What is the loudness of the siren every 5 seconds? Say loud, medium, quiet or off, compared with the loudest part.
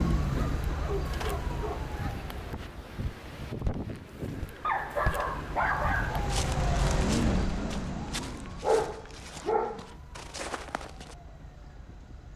loud, loud, quiet.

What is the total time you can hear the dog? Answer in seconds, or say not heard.
5 s.